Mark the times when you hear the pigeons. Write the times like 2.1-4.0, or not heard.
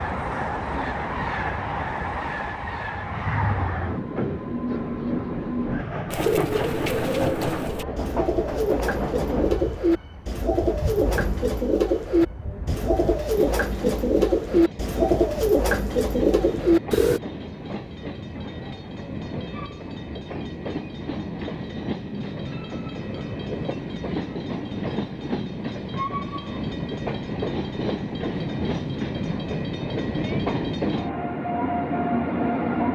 6.1-17.2.